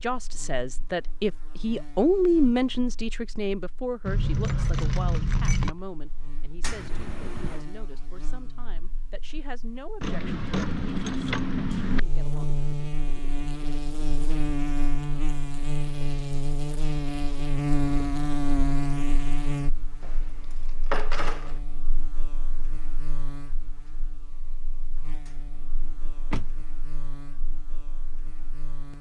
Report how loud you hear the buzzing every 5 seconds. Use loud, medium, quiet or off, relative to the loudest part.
quiet, quiet, loud, loud, quiet, quiet.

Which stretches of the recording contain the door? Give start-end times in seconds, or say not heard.
6.6-7.7, 25.2-26.6.